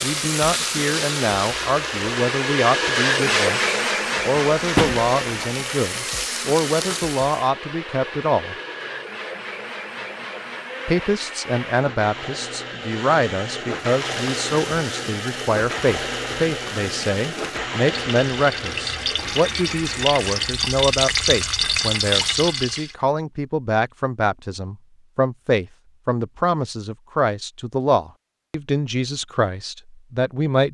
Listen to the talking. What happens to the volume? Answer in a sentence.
The loudness of the talking stays about the same.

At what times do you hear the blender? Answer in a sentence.
You can hear the blender from 0.0 to 20.6 s.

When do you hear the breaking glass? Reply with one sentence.
The breaking glass can be heard from 4.8 to 5.5 s.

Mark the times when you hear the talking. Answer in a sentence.
You can hear the talking from 0.0 to 8.6 s and from 10.8 to 30.7 s.